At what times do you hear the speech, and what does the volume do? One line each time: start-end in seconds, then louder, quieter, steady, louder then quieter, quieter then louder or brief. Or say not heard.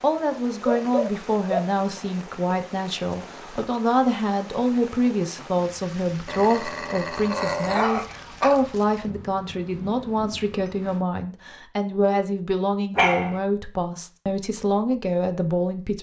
0.0-15.9 steady.